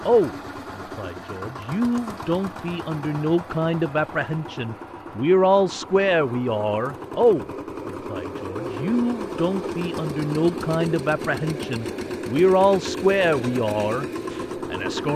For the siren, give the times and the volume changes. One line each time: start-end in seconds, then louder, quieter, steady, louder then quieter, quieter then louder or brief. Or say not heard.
not heard.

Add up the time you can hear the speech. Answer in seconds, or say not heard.
15 s.